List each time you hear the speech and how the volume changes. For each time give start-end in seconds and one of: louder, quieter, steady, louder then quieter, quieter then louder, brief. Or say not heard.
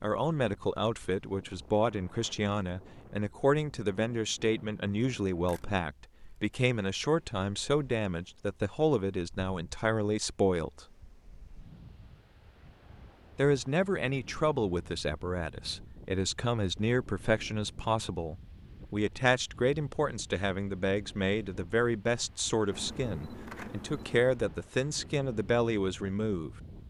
0.0-10.8 steady
13.3-26.5 steady.